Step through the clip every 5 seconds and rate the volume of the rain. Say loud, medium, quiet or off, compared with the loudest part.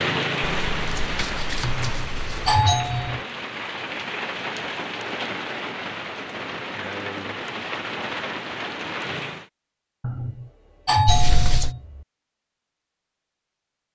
loud, loud, off.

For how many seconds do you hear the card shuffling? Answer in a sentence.
The card shuffling can be heard for 3 seconds in total.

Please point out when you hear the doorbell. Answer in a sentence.
You can hear the doorbell from 1.6 to 3.2 s and from 10.0 to 12.1 s.